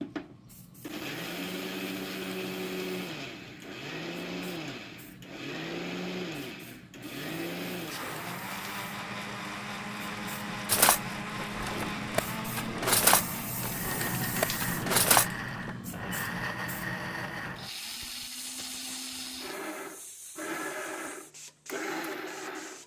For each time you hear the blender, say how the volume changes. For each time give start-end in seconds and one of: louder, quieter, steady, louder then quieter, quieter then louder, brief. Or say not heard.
0.0-22.8 steady.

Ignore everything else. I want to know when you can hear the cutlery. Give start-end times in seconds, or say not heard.
10.7-15.7.